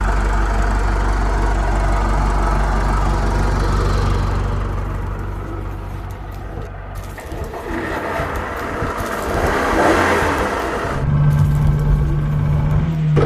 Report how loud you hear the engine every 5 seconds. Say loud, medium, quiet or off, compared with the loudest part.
medium, medium, loud.